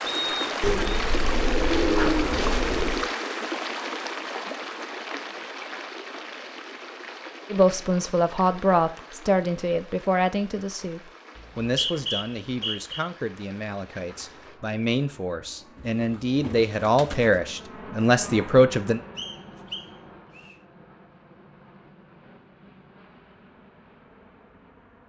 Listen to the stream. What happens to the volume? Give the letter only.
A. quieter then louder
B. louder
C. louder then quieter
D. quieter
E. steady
D.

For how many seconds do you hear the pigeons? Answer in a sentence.
The pigeons can be heard for 4 seconds in total.